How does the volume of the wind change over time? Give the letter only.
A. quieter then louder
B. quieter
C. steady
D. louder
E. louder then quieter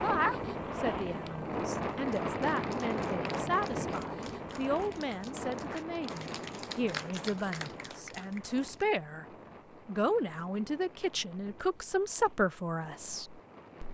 B.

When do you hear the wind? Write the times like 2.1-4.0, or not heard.
0.0-13.8.